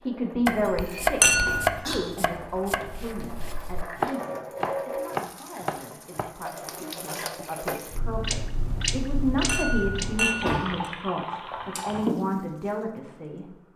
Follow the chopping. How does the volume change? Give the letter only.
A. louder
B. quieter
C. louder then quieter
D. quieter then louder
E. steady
D.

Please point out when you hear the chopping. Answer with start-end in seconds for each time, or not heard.
0.5-6.3.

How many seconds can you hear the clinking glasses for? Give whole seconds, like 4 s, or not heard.
2 s.